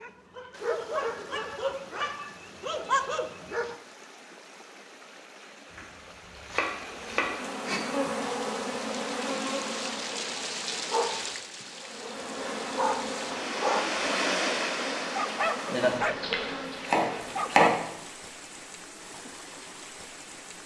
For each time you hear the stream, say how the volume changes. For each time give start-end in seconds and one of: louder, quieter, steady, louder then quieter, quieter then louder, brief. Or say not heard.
0.1-20.6 louder then quieter.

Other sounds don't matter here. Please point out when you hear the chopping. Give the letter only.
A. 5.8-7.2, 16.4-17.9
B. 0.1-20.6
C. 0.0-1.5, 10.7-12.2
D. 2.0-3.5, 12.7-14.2
A.